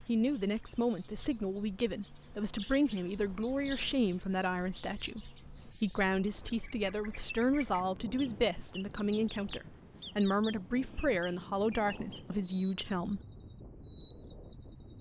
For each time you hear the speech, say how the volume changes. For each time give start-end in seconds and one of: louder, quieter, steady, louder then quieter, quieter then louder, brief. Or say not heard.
0.1-13.2 steady.